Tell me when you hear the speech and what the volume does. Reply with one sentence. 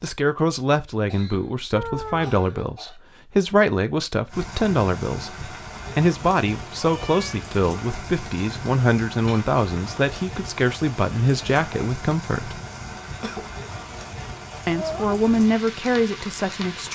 The speech can be heard from 0.0 to 12.6 s, at a steady volume; and briefly from 14.7 to 16.9 s.